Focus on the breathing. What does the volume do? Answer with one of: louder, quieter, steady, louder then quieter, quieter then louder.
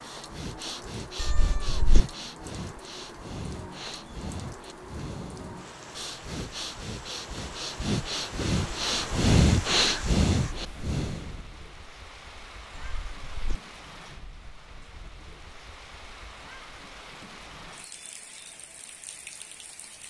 louder.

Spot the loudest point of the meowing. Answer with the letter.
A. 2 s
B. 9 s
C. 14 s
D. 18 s
A.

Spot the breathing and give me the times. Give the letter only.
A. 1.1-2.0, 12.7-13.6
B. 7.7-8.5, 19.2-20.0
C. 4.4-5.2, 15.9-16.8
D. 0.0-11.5
D.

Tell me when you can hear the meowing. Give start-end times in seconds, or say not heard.
1.1-2.0, 12.7-13.6.